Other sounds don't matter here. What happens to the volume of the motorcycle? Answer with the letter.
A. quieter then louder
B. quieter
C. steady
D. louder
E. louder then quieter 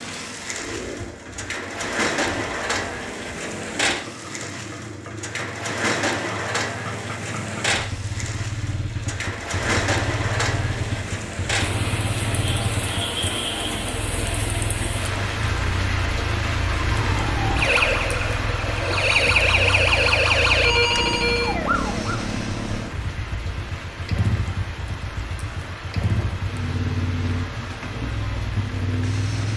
D.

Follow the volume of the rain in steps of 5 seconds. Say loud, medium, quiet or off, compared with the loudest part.
loud, loud, loud, loud, medium, medium.